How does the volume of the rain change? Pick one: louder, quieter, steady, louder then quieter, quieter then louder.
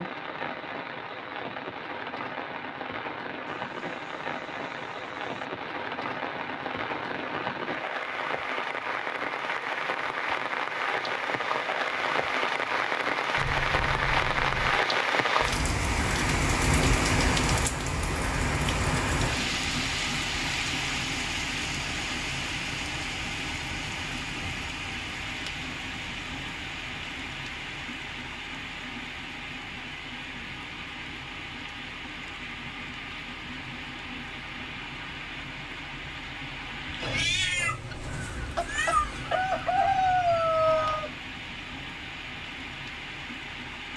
louder then quieter.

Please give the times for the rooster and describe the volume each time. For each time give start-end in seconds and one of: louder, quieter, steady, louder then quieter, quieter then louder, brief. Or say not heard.
3.5-5.5 brief
37.0-41.1 louder.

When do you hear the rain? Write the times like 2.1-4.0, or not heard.
0.0-43.9.